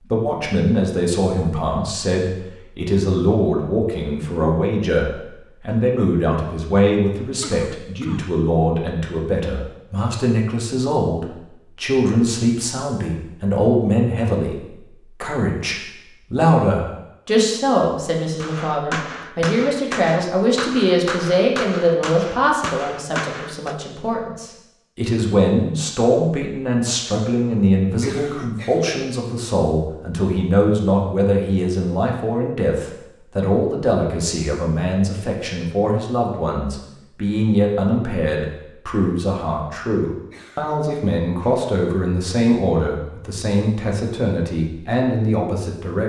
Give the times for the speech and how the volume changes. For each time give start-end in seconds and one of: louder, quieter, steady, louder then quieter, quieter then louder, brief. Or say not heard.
0.0-46.0 steady.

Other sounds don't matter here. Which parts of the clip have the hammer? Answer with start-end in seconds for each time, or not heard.
18.4-23.8.